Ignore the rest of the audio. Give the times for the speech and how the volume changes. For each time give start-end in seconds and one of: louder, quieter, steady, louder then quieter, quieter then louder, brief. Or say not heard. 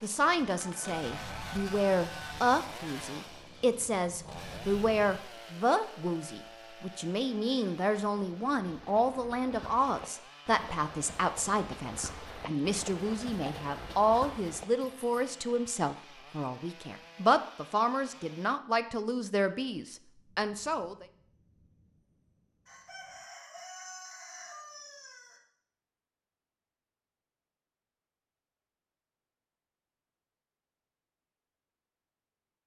0.0-21.1 steady.